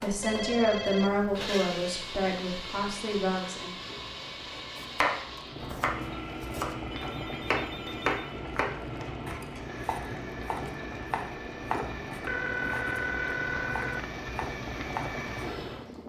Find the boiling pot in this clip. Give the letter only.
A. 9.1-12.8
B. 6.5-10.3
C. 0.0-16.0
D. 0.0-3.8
C.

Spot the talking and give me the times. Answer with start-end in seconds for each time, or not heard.
0.0-3.8.